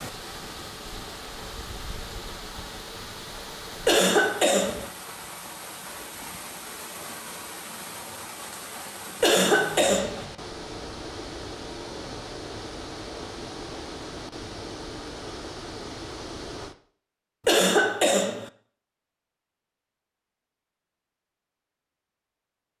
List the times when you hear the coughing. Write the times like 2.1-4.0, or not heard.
3.9-4.9, 9.2-10.2, 17.4-18.5.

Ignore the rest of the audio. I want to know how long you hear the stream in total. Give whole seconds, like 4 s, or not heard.
17 s.